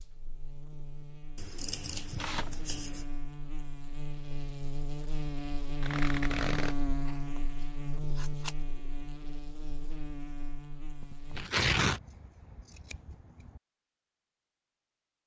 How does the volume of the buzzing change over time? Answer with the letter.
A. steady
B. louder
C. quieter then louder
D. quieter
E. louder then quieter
E.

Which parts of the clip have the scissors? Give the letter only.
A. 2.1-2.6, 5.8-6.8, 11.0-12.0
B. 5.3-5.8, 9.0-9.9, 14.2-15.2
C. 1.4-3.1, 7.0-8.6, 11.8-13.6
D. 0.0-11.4
C.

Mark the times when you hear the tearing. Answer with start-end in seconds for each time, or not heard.
2.1-2.6, 5.8-6.8, 11.0-12.0.